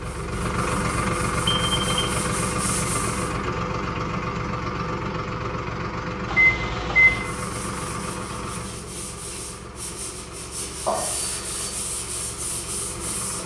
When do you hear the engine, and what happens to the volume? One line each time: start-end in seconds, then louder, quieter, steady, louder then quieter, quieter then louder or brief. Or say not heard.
0.0-13.4 quieter.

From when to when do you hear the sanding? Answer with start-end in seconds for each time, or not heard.
0.0-3.4, 7.2-13.4.